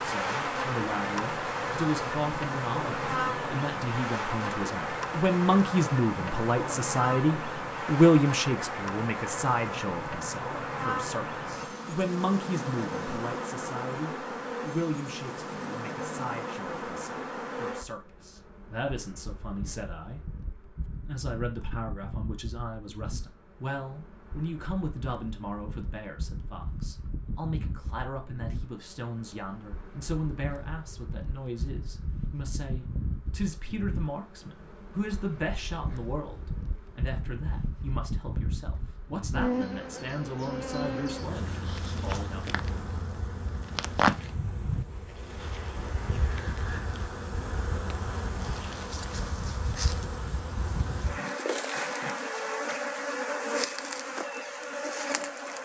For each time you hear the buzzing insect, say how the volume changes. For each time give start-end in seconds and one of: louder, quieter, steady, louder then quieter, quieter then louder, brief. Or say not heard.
0.0-55.5 quieter then louder.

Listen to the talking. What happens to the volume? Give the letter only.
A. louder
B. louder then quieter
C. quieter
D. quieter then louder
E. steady
C.